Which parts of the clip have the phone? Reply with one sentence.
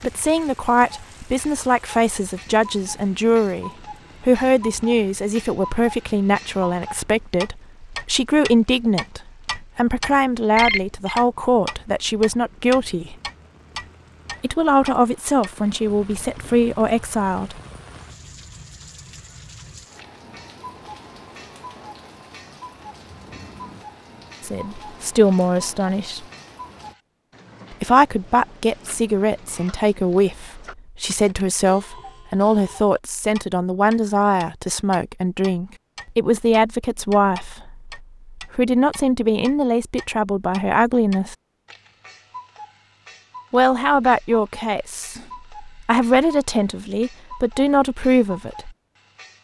You can hear the phone from 10.6 to 11.2 s.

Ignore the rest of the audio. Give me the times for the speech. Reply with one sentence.
You can hear the speech from 0.0 to 13.2 s, from 14.4 to 17.6 s, from 24.4 to 26.2 s, from 27.7 to 41.4 s and from 43.5 to 48.7 s.